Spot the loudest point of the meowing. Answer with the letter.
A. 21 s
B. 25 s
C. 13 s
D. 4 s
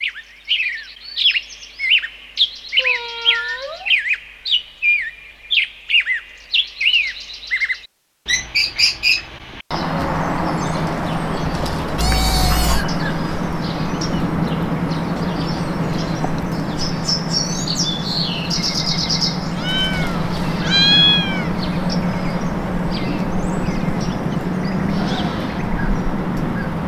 A.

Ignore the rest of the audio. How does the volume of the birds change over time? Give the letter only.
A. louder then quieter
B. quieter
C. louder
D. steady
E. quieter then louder
D.